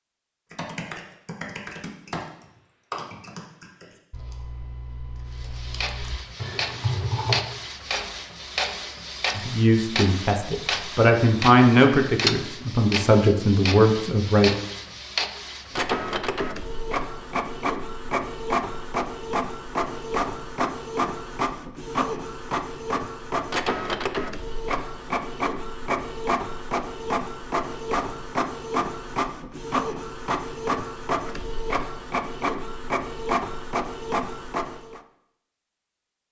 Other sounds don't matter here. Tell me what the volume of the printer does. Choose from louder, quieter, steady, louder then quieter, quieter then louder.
steady.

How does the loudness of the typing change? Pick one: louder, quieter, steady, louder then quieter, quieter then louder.
quieter then louder.